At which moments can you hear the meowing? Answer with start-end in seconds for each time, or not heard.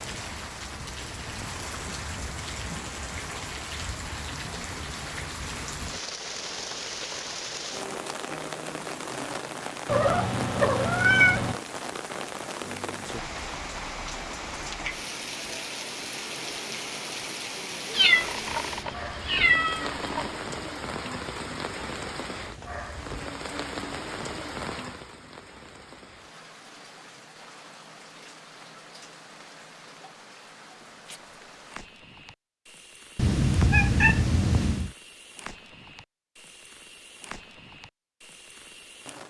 9.8-11.6, 17.9-20.4, 33.1-34.9.